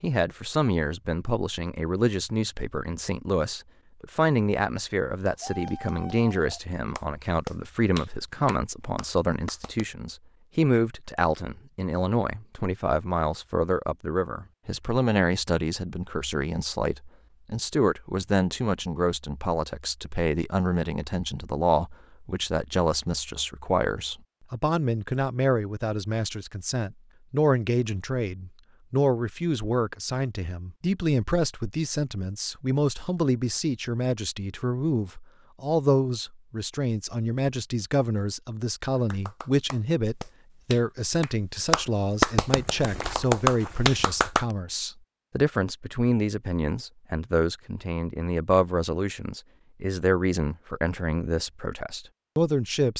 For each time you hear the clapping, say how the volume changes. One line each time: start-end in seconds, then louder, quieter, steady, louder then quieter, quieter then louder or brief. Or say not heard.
5.2-9.8 louder then quieter
39.0-44.5 louder.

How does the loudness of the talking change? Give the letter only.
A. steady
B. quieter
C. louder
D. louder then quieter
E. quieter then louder
A.